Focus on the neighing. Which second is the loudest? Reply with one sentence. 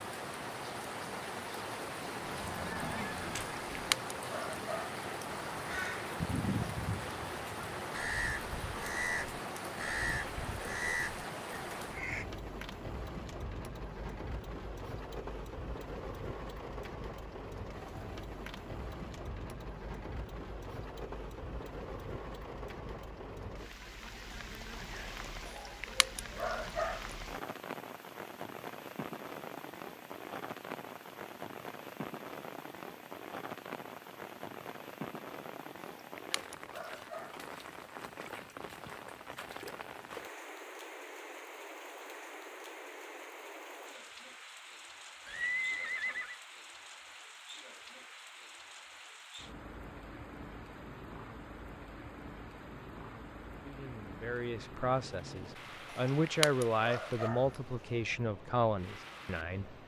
The volume of the neighing peaks at 46 seconds.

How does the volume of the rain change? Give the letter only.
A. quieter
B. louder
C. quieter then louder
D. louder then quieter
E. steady
A.